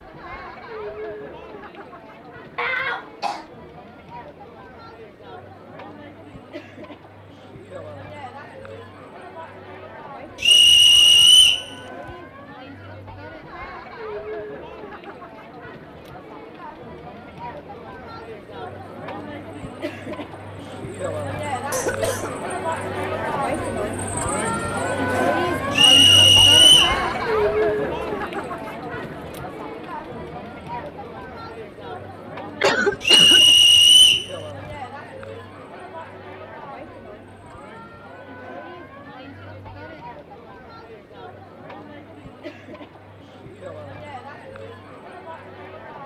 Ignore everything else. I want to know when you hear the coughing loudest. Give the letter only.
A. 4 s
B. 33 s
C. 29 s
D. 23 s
B.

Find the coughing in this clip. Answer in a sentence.
The coughing can be heard from 2.5 to 3.5 s, from 21.7 to 22.4 s and from 32.6 to 33.4 s.